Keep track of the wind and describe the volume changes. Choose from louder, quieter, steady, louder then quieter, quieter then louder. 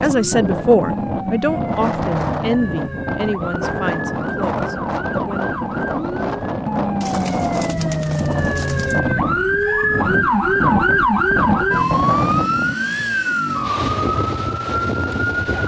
steady.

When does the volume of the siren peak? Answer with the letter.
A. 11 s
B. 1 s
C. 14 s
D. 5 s
A.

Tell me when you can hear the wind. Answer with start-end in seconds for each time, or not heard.
0.0-15.6.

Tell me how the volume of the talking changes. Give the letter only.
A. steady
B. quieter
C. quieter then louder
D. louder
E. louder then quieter
B.